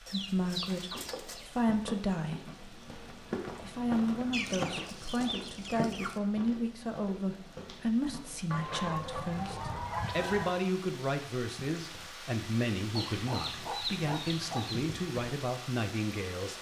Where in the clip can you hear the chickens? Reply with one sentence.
You can hear the chickens from 0.1 to 1.6 s, from 4.3 to 6.2 s, from 8.5 to 10.6 s and from 12.9 to 14.8 s.